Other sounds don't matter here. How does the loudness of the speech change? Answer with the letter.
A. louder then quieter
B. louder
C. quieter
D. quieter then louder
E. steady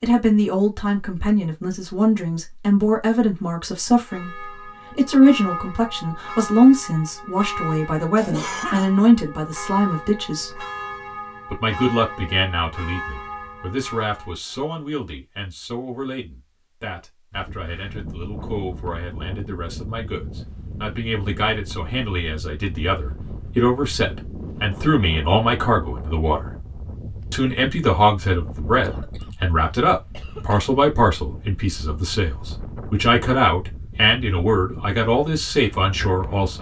D.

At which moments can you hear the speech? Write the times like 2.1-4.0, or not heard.
0.0-10.6, 11.5-26.4, 27.3-36.5.